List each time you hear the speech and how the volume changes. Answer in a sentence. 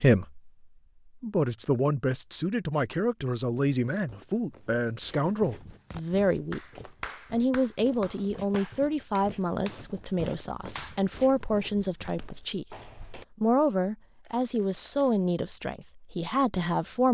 You can hear the speech from 0.0 to 17.0 s, at a steady volume.